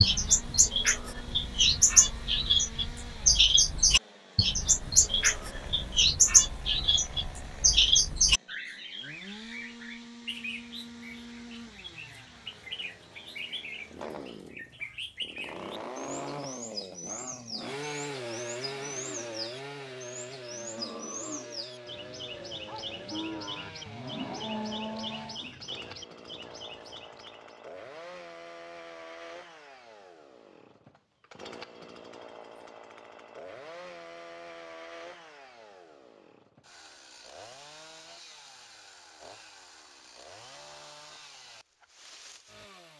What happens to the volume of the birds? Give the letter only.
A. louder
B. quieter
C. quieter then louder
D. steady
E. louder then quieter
B.